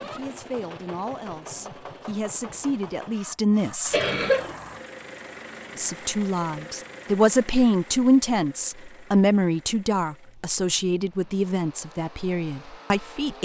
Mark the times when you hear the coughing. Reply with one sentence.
You can hear the coughing from 3.9 to 4.5 s.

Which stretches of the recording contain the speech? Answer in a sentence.
You can hear the speech from 0.0 to 4.0 s and from 5.8 to 13.4 s.